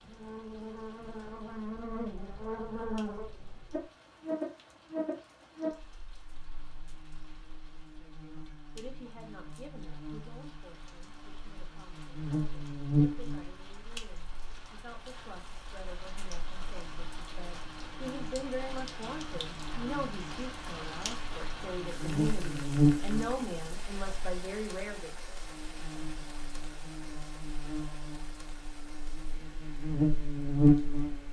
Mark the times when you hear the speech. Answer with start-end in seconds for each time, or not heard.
8.0-25.4.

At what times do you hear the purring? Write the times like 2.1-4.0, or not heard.
not heard.